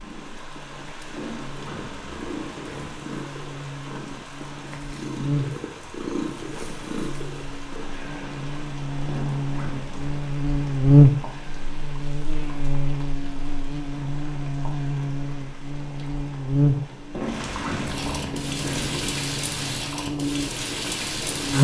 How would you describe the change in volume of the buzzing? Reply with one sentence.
The volume of the buzzing goes up, then down.